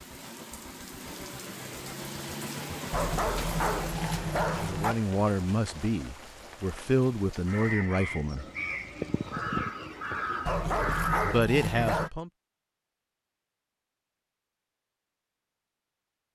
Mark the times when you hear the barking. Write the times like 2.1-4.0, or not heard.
2.9-5.0, 10.4-12.1.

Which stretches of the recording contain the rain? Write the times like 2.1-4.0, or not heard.
0.0-10.4.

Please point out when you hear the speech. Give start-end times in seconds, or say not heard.
4.6-8.4, 11.2-12.3.